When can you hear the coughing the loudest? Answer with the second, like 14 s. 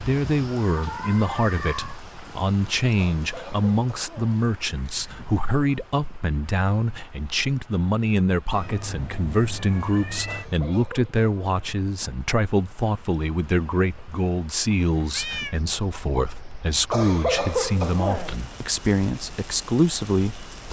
17 s.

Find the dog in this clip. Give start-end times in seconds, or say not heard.
not heard.